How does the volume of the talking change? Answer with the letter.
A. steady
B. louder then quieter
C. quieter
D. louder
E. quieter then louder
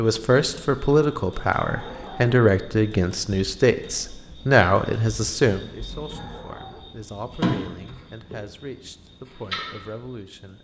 C.